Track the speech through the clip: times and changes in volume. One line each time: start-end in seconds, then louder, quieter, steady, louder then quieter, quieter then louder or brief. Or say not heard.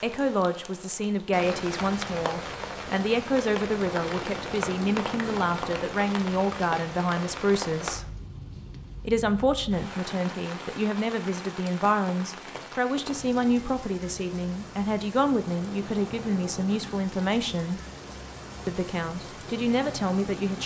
0.0-8.1 steady
9.1-17.8 steady
18.6-20.6 brief.